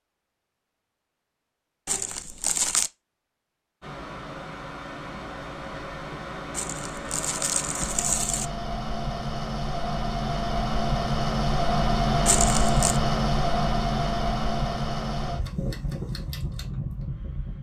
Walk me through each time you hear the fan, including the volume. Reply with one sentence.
The fan can be heard from 3.8 to 17.5 s, getting louder then quieter.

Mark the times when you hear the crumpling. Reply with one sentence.
The crumpling can be heard from 1.9 to 2.9 s, from 6.5 to 8.4 s and from 12.2 to 13.0 s.